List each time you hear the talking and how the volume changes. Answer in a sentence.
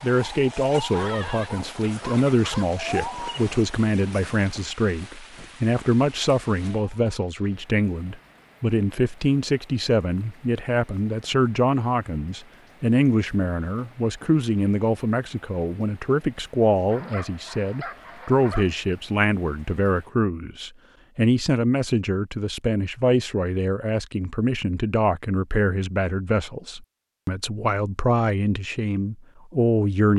You can hear the talking from 0.0 to 30.1 s, at a steady volume.